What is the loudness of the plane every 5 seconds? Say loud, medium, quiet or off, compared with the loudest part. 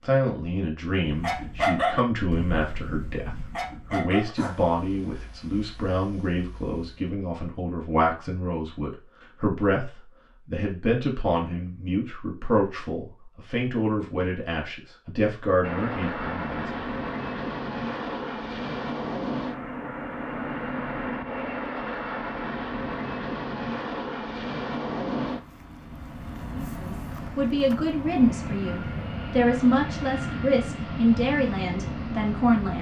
off, off, off, loud, loud, loud, loud.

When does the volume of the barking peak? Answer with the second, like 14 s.
2 s.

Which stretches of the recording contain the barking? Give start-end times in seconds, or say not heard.
1.0-7.1.